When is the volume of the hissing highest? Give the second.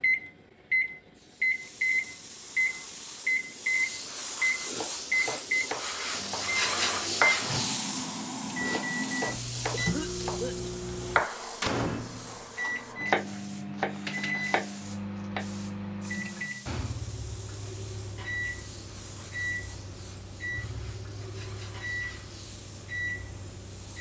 7 s.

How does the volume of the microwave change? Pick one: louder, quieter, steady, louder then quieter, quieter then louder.
quieter.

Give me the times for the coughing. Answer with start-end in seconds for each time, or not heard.
9.7-10.9.